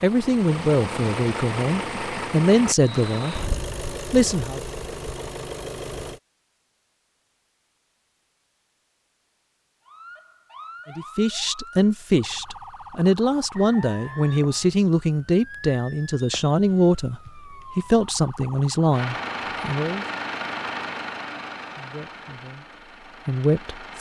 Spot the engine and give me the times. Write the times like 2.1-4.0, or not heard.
0.0-6.2, 18.9-23.9.